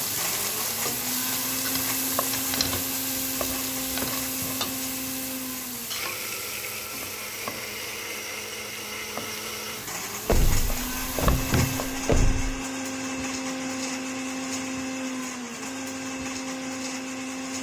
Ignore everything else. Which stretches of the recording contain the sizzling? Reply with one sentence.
The sizzling can be heard from 0.0 to 11.9 s.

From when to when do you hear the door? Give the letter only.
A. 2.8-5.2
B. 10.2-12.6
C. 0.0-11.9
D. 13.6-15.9
B.